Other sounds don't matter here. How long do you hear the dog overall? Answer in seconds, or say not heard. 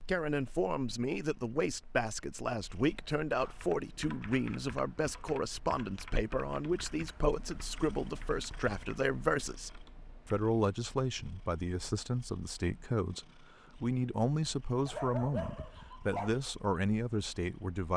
2 s.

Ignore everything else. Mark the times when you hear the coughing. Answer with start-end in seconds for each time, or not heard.
not heard.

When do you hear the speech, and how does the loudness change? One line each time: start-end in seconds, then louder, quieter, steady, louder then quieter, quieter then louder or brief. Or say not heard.
0.0-17.9 steady.